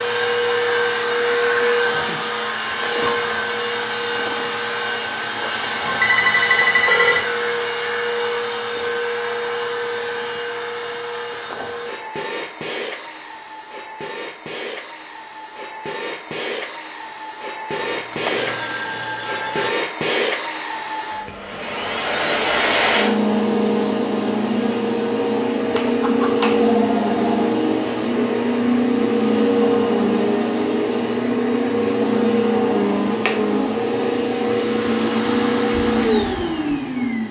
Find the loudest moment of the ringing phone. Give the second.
7 s.